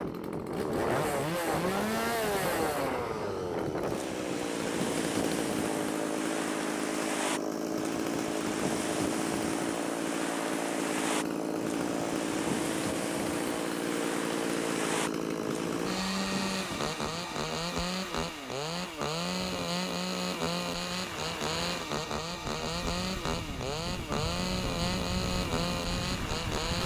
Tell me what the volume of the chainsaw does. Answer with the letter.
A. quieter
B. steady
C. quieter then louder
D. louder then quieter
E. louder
B.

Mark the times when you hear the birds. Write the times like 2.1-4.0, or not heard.
not heard.